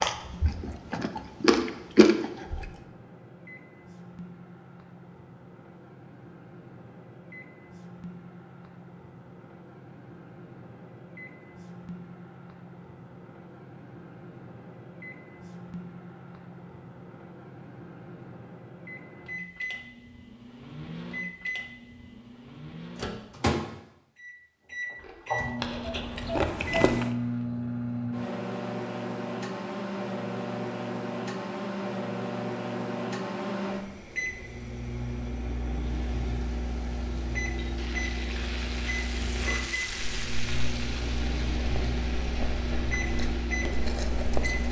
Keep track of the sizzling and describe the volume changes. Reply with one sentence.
The volume of the sizzling goes up, then down.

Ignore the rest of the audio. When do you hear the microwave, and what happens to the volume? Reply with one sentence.
You can hear the microwave from 0.0 to 44.6 s, getting louder.